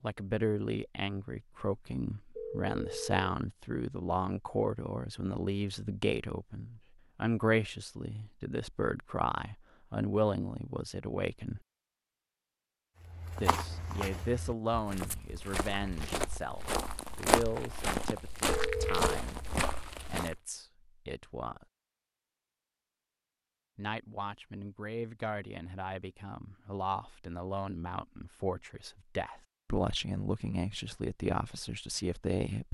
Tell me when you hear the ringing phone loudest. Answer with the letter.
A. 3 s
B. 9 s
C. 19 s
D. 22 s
C.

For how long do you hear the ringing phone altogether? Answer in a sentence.
The ringing phone can be heard for 2 seconds in total.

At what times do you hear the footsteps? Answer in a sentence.
The footsteps can be heard from 13.0 to 20.4 s.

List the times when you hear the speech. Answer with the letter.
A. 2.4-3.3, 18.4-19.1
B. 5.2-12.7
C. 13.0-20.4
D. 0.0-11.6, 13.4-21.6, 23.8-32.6
D.